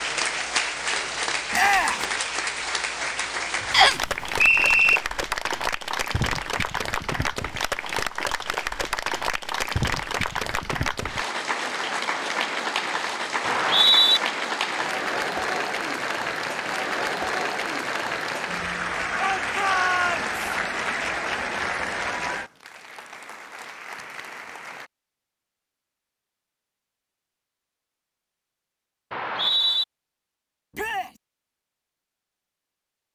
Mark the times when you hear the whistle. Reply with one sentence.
The whistle can be heard from 3.7 to 5.0 s, from 13.4 to 14.2 s and from 29.1 to 29.9 s.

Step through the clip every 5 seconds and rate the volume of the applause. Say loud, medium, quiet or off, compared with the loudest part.
loud, loud, loud, loud, loud, off, off.